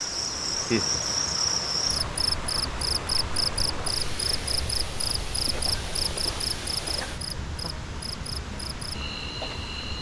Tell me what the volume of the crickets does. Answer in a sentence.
The loudness of the crickets goes down.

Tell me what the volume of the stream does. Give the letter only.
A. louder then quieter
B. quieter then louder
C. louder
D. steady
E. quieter
D.